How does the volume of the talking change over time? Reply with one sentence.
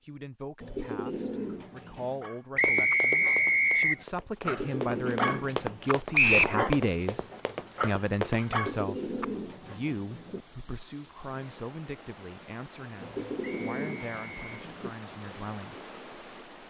The volume of the talking goes up, then down.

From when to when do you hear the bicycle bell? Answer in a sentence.
You can't hear the bicycle bell here.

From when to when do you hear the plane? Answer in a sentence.
The plane can't be heard in this clip.